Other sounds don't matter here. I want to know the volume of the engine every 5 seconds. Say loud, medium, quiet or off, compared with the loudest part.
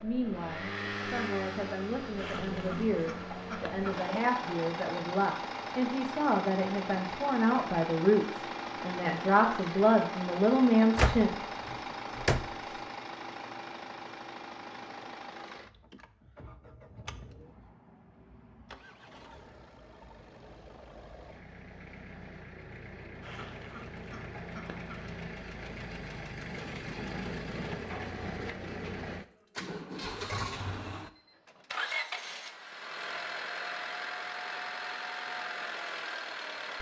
loud, loud, loud, quiet, medium, loud, loud, loud.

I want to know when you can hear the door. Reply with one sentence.
You can hear the door from 10.9 to 12.8 s.